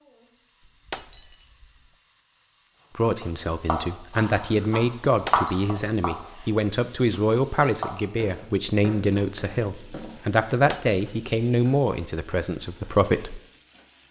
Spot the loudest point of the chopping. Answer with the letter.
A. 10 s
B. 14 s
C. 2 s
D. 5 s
D.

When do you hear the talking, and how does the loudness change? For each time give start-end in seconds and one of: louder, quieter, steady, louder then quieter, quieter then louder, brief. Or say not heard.
3.0-13.4 steady.